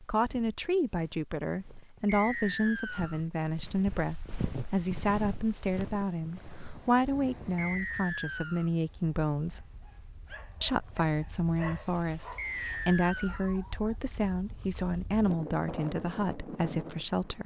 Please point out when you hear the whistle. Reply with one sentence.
You can hear the whistle from 2.0 to 3.2 s, from 7.5 to 8.7 s and from 12.3 to 13.5 s.